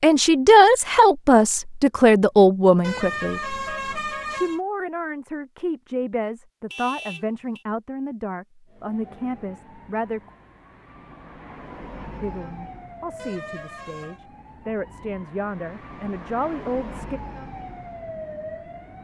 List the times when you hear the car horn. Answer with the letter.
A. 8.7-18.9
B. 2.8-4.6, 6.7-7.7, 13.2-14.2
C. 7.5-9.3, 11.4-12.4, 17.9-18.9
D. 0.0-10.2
B.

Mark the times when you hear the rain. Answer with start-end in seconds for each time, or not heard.
not heard.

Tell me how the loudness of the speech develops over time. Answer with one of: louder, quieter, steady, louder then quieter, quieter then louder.
quieter.